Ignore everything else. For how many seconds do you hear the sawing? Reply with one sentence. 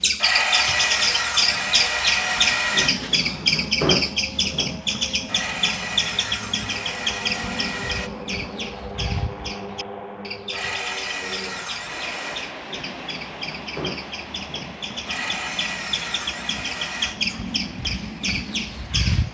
The sawing can be heard for 10 seconds in total.